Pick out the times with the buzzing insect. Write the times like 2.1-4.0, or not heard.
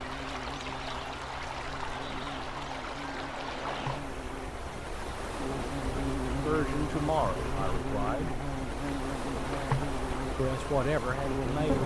0.0-11.8.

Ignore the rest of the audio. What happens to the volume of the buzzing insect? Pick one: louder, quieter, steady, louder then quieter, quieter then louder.
louder.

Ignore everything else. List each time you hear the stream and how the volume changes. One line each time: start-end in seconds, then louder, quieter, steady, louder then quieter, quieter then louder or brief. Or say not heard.
0.0-11.8 steady.